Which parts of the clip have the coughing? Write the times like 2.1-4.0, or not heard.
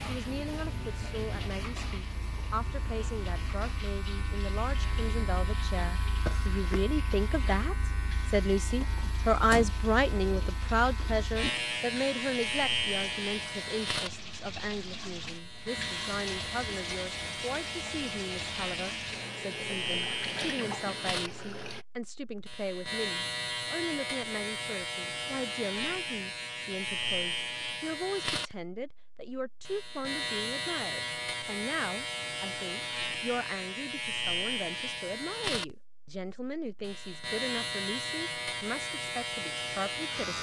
6.2-6.8.